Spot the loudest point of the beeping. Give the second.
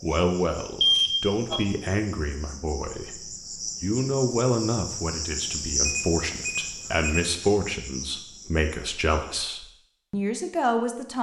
1 s.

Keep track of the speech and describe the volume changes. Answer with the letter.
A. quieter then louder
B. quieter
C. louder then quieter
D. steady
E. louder
D.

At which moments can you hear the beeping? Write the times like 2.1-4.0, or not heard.
0.8-1.6, 5.8-7.3.